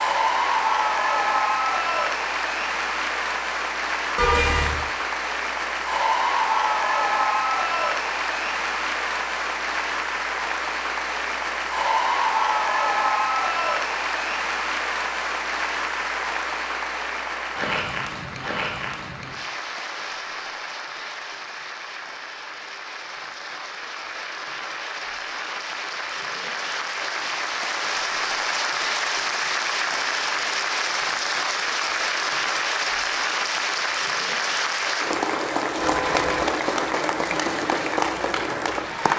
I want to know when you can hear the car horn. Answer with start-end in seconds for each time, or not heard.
4.2-4.8, 35.8-36.5.